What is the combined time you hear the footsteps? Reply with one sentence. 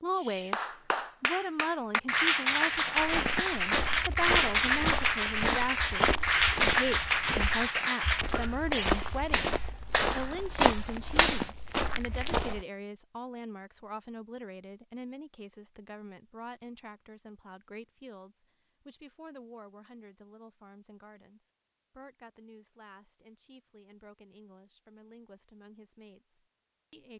You can hear the footsteps for 10 seconds altogether.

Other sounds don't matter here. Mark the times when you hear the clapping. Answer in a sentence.
The clapping can be heard from 0.2 to 11.5 s.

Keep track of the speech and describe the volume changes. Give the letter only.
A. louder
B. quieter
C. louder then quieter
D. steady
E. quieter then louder
B.